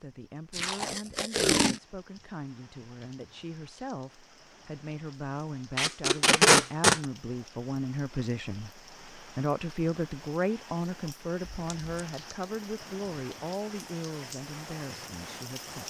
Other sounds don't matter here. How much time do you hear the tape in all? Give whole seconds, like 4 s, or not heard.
3 s.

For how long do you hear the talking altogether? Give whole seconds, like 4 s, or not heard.
16 s.